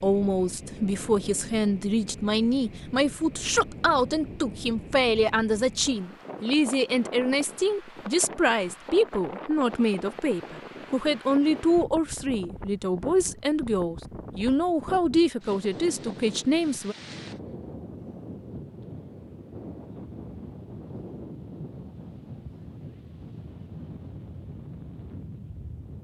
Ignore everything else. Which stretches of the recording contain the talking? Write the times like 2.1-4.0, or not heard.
0.0-16.9.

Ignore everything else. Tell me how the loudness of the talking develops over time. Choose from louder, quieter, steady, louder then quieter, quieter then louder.
steady.